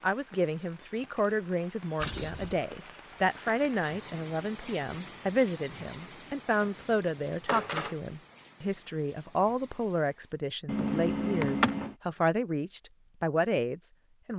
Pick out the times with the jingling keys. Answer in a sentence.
The jingling keys can be heard from 1.9 to 2.6 s, from 6.6 to 8.0 s and from 10.7 to 11.9 s.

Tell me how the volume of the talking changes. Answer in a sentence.
The loudness of the talking stays about the same.